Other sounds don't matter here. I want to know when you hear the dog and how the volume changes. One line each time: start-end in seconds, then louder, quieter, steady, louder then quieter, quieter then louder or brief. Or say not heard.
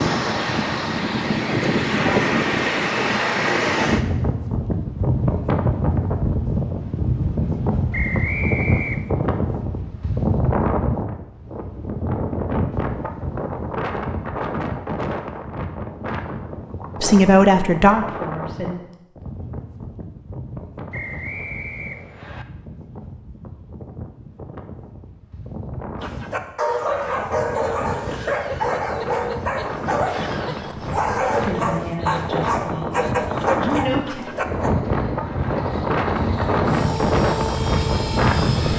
26.0-34.7 steady.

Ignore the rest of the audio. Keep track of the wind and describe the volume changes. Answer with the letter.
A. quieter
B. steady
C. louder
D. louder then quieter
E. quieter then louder
E.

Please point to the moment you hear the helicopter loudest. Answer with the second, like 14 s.
38 s.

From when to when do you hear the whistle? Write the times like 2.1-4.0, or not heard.
7.9-9.1, 20.9-22.4.